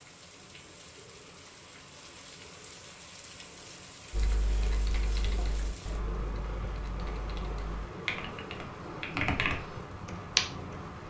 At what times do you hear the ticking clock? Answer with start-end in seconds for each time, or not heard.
not heard.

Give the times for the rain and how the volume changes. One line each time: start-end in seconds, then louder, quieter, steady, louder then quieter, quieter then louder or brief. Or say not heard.
0.0-11.0 louder.